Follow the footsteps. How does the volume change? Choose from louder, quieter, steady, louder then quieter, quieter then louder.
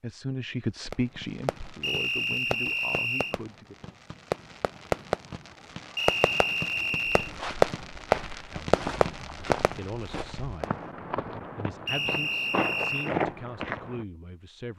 louder.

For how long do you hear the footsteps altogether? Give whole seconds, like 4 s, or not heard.
7 s.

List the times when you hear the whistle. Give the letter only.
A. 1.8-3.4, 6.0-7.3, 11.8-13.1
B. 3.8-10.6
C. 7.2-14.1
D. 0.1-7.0
A.